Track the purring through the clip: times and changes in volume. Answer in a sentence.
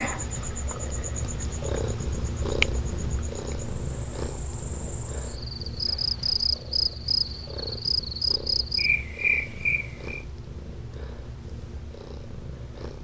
The purring can be heard from 0.0 to 12.9 s, getting quieter.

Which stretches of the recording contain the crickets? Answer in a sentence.
The crickets can be heard from 0.0 to 10.2 s.